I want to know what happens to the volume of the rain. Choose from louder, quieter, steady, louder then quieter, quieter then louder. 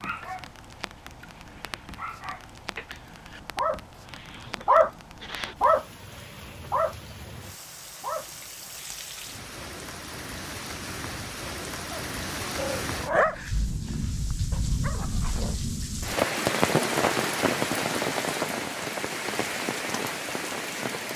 louder.